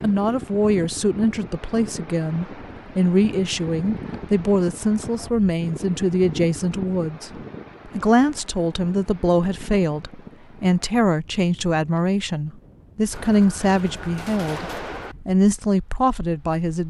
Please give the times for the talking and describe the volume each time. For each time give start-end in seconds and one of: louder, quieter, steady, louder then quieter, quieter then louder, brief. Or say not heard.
0.0-16.8 steady.